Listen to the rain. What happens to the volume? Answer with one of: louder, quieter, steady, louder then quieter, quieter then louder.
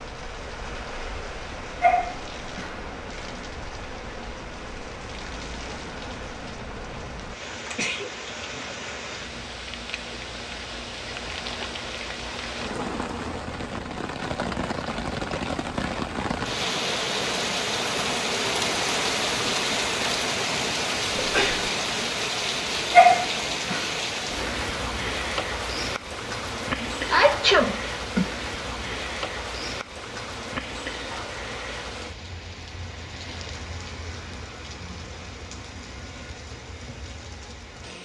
louder then quieter.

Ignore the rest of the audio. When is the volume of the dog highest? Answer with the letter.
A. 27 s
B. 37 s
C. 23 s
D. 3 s
C.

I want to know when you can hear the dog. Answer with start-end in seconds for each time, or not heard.
1.8-2.8, 22.9-23.9.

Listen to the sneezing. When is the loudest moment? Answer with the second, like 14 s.
27 s.